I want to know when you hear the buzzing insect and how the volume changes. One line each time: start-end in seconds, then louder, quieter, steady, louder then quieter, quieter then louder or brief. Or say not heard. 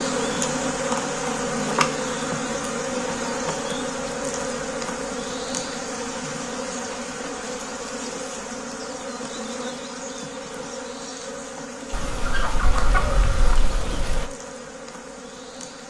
0.0-15.8 quieter.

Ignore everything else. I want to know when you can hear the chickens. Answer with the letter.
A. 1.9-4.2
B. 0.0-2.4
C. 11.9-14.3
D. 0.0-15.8
C.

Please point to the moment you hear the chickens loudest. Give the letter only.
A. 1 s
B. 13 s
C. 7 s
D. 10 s
B.